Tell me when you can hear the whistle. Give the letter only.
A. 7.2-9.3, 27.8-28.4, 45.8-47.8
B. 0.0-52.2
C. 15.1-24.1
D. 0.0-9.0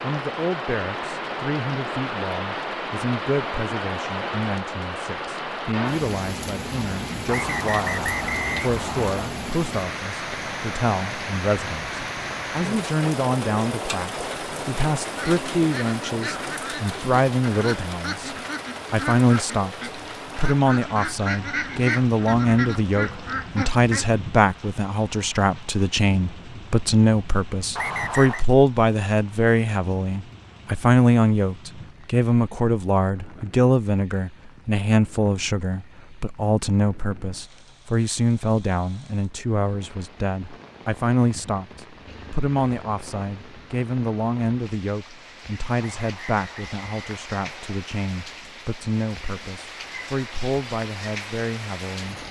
A.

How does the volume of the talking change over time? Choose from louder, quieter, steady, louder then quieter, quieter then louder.
louder then quieter.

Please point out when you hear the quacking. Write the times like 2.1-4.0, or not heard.
15.1-24.1.